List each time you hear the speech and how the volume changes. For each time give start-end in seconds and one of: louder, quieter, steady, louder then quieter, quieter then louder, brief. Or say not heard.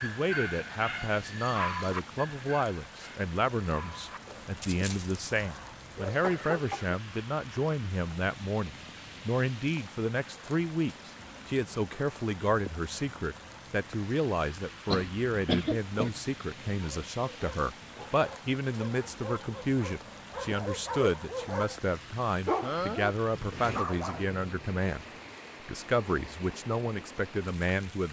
0.0-25.1 steady
25.6-28.0 brief.